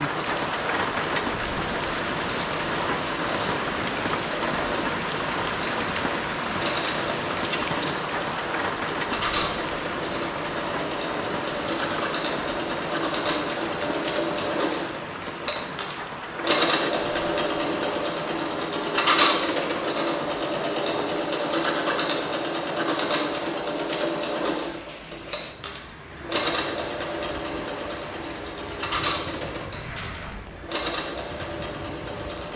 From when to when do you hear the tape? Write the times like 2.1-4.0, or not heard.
29.7-30.6.